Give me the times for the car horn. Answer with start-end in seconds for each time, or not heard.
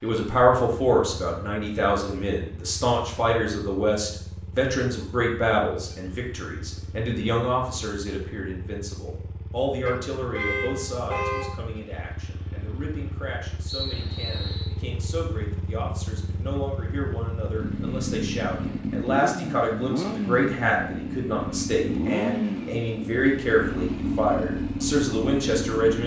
9.8-11.5.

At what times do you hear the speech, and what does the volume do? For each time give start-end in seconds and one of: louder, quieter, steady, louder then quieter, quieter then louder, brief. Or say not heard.
0.0-26.0 quieter then louder.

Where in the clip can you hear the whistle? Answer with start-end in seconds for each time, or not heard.
13.7-14.7.